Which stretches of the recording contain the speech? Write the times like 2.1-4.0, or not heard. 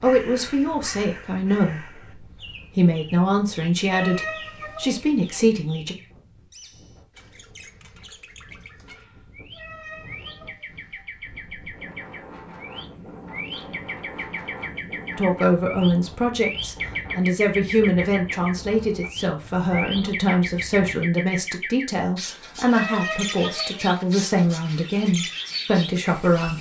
0.0-6.0, 15.2-26.5.